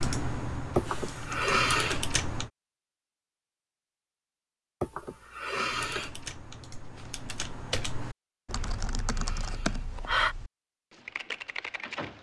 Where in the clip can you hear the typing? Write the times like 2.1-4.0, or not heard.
0.0-2.5, 5.7-12.1.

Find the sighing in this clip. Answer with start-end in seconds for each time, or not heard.
0.8-2.0, 4.8-6.1, 8.5-10.3.